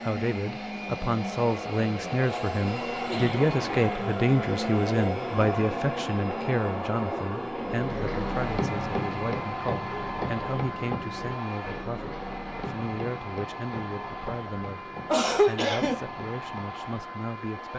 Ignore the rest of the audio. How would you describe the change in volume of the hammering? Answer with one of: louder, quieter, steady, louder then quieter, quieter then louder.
quieter.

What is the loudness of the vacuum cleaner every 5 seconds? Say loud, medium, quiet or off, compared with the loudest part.
loud, loud, medium, medium.